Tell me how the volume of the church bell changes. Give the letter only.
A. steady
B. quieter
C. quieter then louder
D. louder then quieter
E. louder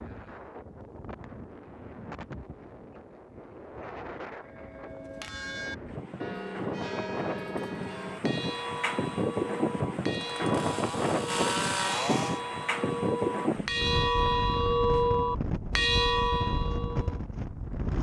E.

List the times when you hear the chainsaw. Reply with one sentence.
You can hear the chainsaw from 10.2 to 12.4 s.